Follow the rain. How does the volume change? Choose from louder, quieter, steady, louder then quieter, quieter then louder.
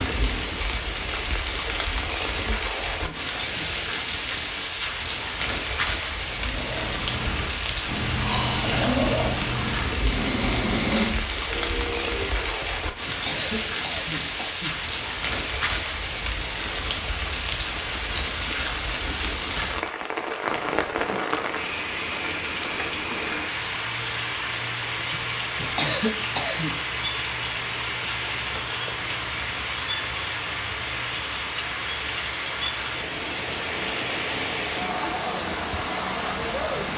steady.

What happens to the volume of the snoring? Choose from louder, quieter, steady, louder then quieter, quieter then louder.
louder then quieter.